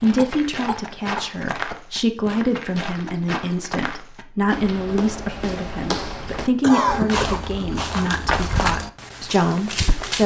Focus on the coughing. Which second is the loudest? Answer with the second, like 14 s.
7 s.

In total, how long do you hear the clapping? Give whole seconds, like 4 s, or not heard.
not heard.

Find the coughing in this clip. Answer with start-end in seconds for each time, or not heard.
0.1-1.9, 6.6-7.5.